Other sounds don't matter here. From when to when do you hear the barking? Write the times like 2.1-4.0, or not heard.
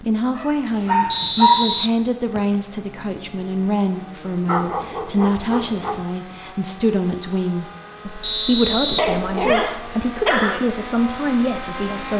0.3-1.9, 4.5-6.0, 8.8-10.6.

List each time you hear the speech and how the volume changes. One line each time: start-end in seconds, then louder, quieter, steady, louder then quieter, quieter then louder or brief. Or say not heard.
0.0-12.1 steady.